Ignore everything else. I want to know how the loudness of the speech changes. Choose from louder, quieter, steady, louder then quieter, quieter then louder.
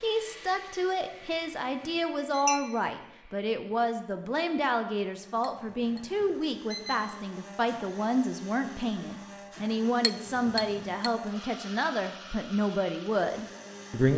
steady.